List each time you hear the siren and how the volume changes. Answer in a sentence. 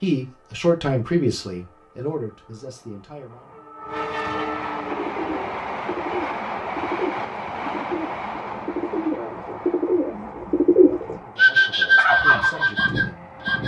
You can't hear the siren here.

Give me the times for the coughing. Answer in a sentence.
The coughing can't be heard in this clip.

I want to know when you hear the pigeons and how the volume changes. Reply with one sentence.
You can hear the pigeons from 4.8 to 13.6 s, getting louder.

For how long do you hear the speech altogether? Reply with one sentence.
You can hear the speech for 6 seconds altogether.